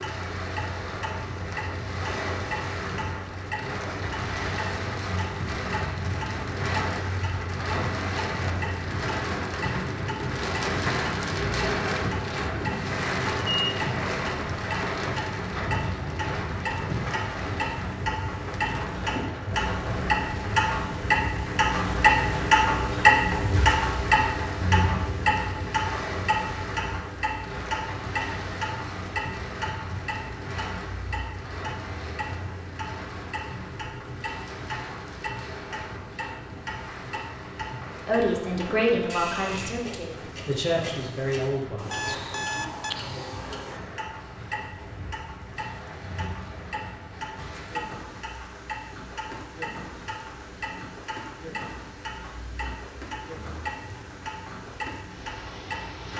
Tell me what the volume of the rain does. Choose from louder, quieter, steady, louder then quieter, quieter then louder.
quieter.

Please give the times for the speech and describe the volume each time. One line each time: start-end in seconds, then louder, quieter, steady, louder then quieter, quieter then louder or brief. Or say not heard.
38.0-42.0 quieter then louder.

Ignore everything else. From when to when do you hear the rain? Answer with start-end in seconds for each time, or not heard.
0.0-56.1.